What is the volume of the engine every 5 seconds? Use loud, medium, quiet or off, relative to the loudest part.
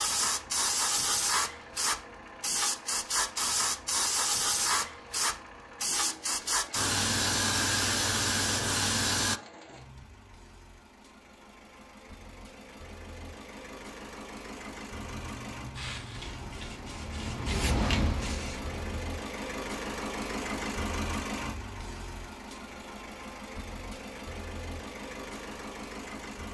medium, medium, medium, loud, loud, loud.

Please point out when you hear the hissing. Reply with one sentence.
The hissing can be heard from 0.0 to 9.4 s and from 14.8 to 19.1 s.